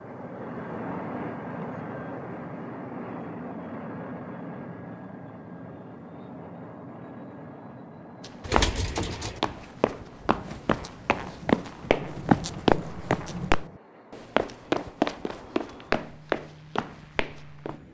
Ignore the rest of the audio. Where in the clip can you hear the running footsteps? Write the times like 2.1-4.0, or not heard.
8.2-17.8.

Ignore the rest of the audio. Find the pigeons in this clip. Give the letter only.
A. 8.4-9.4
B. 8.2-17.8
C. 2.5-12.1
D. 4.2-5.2
A.